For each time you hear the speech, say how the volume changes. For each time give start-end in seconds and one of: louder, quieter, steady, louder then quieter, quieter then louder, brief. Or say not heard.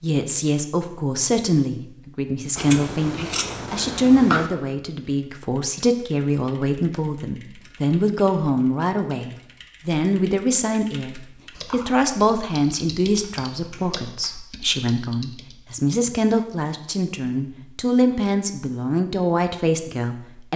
0.0-20.5 steady.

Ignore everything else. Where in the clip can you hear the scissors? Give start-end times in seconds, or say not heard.
2.5-4.5, 11.5-14.3.